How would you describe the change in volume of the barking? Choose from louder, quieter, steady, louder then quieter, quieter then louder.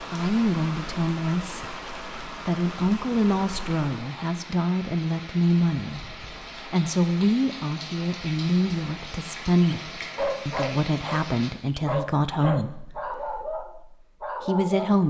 steady.